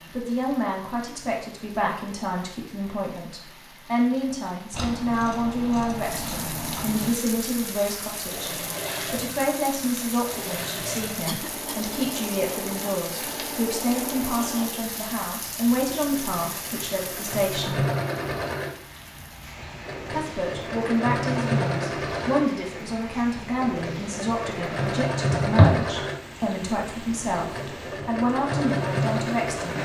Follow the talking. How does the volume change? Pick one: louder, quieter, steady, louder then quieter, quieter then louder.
steady.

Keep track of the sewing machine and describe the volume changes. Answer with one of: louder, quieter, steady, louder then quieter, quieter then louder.
louder.